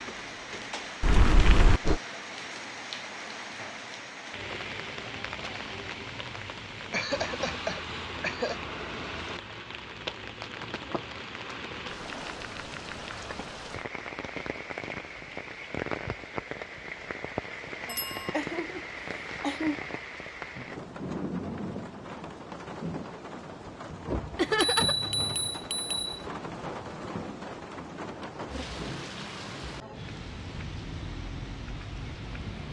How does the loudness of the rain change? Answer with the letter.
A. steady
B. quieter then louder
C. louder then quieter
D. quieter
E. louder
A.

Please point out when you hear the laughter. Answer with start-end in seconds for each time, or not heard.
6.9-8.6, 17.9-19.8, 24.4-25.1.